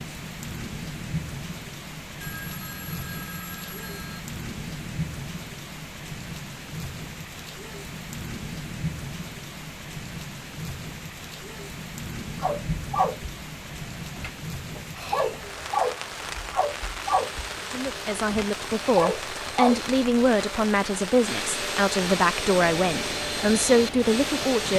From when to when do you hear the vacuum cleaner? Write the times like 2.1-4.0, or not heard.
17.0-24.7.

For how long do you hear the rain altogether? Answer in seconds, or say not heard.
25 s.